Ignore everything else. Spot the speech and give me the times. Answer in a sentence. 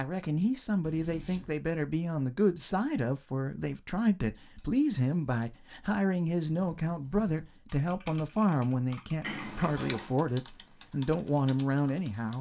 You can hear the speech from 0.0 to 12.3 s.